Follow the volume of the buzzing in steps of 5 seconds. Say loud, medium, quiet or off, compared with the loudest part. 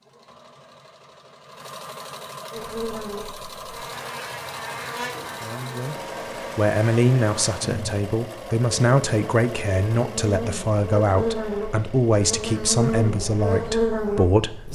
medium, medium, loud.